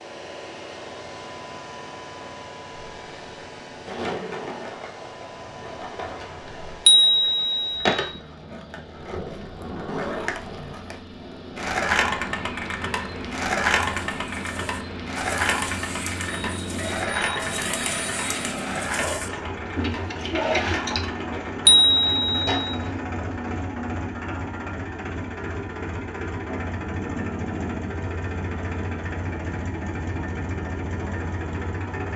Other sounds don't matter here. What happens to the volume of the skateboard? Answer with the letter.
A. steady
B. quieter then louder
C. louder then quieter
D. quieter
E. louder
C.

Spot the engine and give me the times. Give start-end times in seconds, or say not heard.
0.0-32.1.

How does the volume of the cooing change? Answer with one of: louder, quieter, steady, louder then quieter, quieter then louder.
louder.